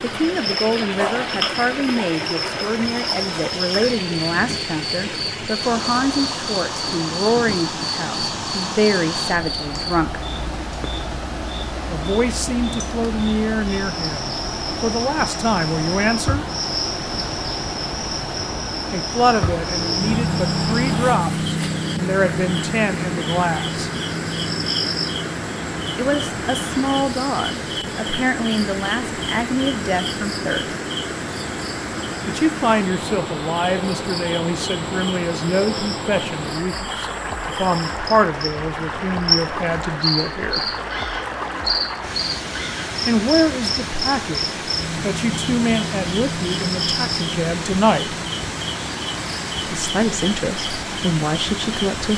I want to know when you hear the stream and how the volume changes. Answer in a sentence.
The stream can be heard from 0.0 to 52.1 s, at a steady volume.